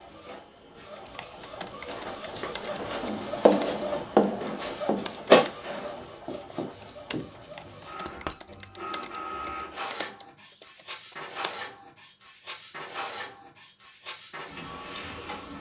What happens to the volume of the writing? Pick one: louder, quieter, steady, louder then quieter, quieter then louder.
quieter.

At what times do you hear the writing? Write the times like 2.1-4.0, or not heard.
2.0-8.3.